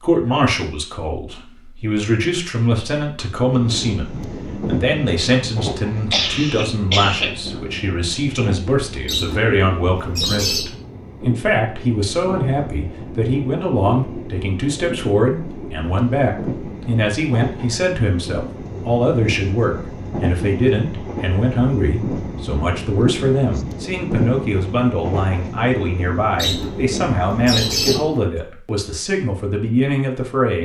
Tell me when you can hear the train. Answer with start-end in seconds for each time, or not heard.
3.4-28.2.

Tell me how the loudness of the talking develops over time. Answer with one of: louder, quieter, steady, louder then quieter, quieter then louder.
steady.